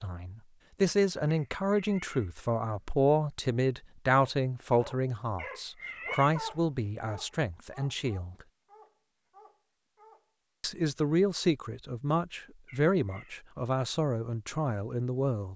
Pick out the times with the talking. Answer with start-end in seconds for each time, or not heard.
0.0-8.3, 10.6-15.5.